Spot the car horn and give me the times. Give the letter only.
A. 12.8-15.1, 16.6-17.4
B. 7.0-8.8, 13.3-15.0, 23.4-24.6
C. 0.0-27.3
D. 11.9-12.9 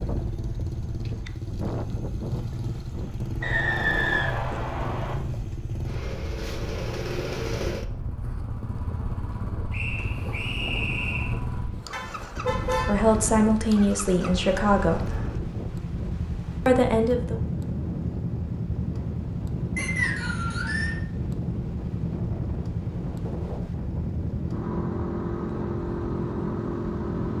D.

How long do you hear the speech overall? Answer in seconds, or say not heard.
3 s.